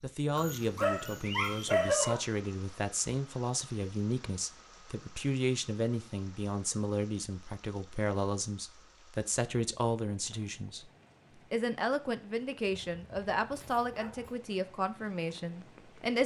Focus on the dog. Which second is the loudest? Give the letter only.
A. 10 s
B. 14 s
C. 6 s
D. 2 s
D.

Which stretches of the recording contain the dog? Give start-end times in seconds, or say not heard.
0.3-2.2, 12.8-14.3.